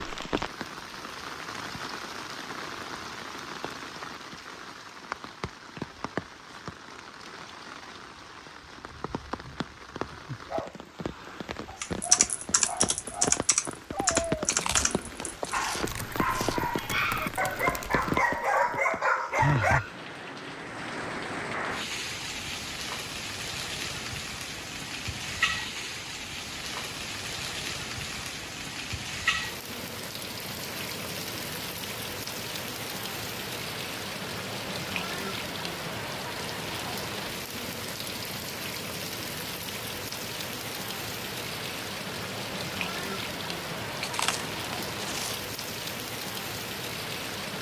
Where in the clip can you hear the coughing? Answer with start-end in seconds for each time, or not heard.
not heard.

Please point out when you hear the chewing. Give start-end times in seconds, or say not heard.
14.4-16.6, 44.0-45.5.